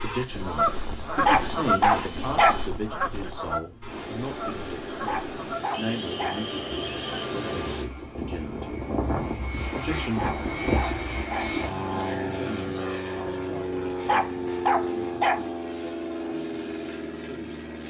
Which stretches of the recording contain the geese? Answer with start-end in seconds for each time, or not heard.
0.0-7.2.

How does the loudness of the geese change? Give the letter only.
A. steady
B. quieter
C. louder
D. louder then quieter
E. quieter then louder
B.